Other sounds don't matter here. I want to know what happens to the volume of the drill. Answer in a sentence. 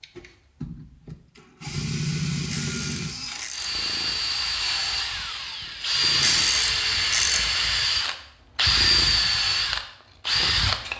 The loudness of the drill goes up.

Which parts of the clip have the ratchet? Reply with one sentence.
The ratchet can be heard from 2.5 to 3.7 s and from 6.2 to 7.4 s.